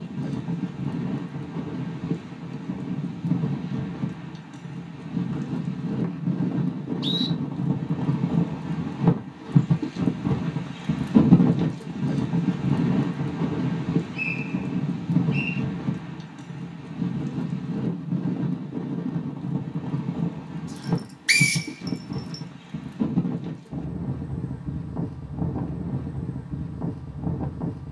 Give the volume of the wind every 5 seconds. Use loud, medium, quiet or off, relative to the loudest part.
medium, loud, loud, medium, medium, medium.